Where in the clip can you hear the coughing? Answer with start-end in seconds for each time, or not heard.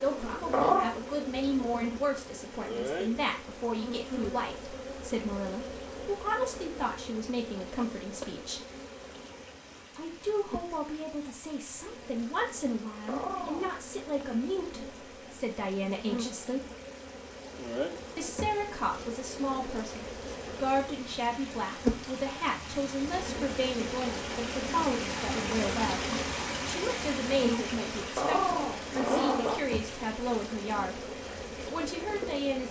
not heard.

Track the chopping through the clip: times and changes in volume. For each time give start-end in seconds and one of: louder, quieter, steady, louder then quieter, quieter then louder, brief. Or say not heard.
not heard.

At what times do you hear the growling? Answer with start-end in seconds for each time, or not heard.
0.5-0.9, 13.1-13.7, 28.1-29.6.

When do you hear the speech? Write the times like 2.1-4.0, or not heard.
0.0-8.6, 9.9-16.6, 18.1-32.6.